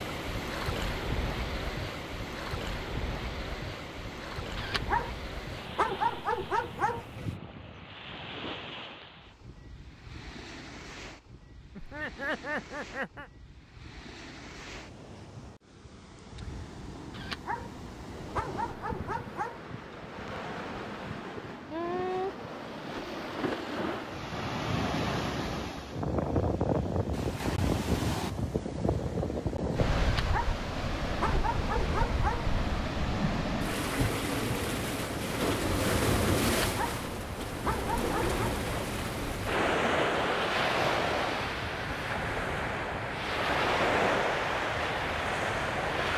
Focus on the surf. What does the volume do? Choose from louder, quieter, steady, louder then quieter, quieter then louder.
quieter then louder.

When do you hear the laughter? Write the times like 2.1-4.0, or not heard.
11.8-13.3.